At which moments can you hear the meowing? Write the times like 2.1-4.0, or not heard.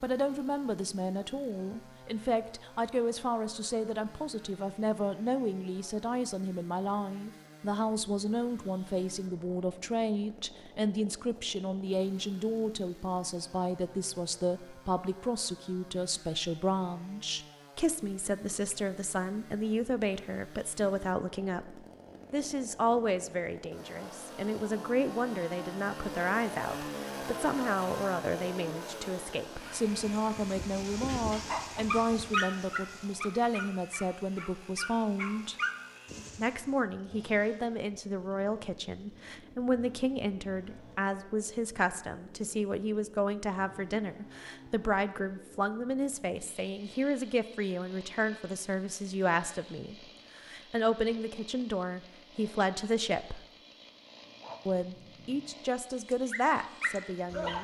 not heard.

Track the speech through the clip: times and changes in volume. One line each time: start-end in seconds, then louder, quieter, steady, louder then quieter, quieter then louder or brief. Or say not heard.
0.0-35.5 steady
36.4-53.4 steady
54.6-57.6 brief.